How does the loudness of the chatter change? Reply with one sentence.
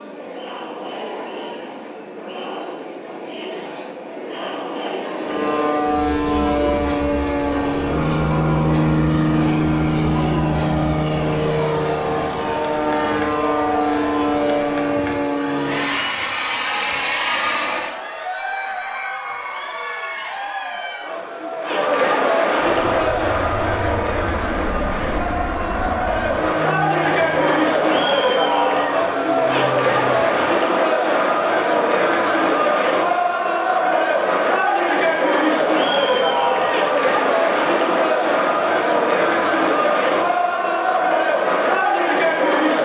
The volume of the chatter goes up.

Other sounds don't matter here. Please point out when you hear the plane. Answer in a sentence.
You can hear the plane from 5.2 to 18.0 s and from 22.7 to 30.6 s.